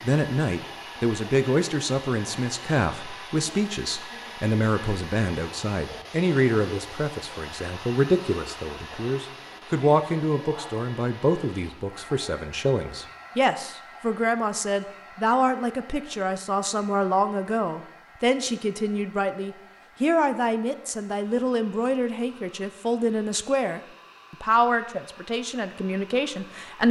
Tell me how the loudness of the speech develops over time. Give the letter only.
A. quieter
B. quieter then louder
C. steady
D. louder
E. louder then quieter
C.